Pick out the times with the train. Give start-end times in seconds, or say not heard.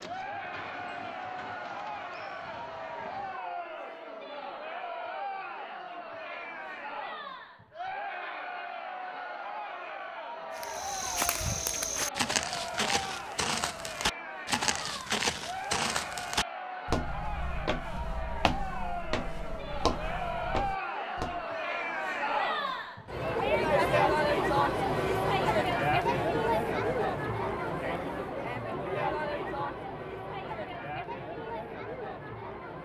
0.0-3.4.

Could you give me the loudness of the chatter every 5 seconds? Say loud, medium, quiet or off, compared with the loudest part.
medium, medium, medium, medium, loud, loud, medium.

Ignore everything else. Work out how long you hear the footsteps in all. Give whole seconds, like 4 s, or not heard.
11 s.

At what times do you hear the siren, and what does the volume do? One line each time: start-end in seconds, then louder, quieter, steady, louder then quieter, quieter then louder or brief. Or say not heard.
not heard.